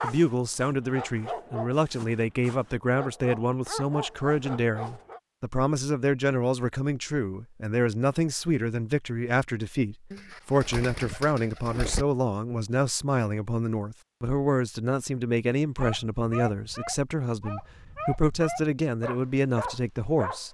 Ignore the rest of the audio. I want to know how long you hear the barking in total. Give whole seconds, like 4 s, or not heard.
10 s.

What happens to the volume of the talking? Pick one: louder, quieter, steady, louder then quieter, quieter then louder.
steady.